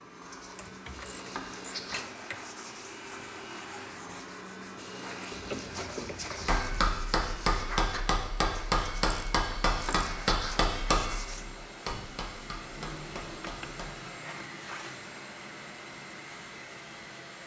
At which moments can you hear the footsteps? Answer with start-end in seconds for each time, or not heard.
not heard.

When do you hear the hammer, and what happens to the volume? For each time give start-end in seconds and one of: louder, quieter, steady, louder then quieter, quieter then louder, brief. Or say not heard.
6.5-13.9 quieter.